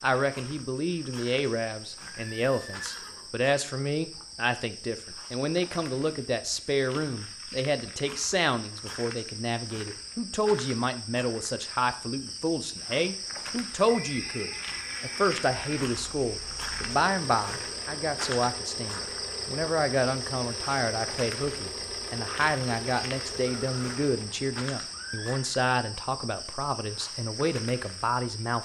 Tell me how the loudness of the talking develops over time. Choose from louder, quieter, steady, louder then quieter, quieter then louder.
steady.